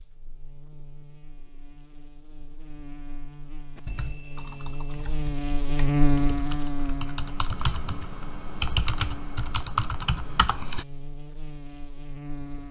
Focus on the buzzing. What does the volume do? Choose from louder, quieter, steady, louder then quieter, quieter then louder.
louder then quieter.